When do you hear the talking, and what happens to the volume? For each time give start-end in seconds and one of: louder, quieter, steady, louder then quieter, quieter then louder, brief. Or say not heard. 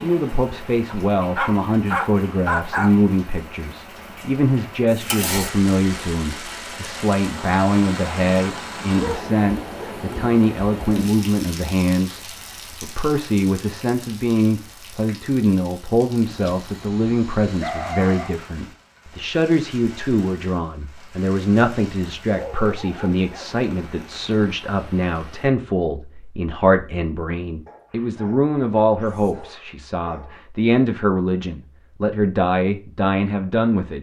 0.0-33.9 steady.